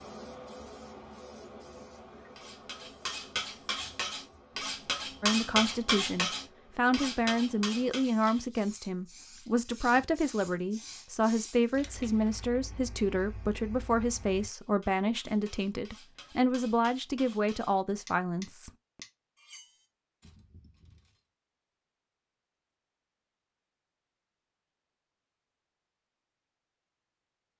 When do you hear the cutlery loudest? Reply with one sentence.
The loudest moment of the cutlery is at 5 seconds.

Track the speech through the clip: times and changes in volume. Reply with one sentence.
You can hear the speech from 5.2 to 18.7 s, at a steady volume.